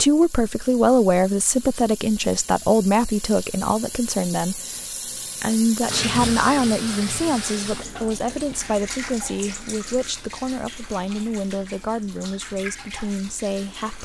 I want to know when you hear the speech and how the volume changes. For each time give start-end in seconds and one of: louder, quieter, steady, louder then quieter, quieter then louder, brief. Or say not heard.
0.0-4.6 quieter
5.4-14.0 quieter.